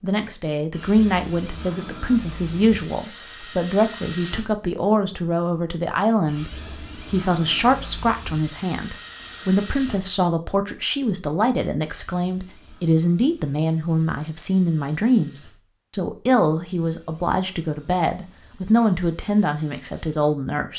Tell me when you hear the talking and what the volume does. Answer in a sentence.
You can hear the talking from 0.0 to 20.7 s, at a steady volume.